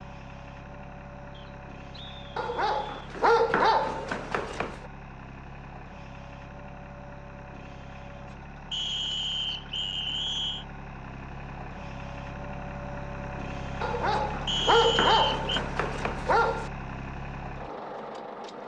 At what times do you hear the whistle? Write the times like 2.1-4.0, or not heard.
1.3-3.1, 8.7-10.7, 14.4-15.6.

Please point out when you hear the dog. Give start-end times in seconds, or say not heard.
2.4-4.8, 13.8-16.7.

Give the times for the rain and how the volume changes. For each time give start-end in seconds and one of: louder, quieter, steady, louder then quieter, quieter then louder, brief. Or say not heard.
not heard.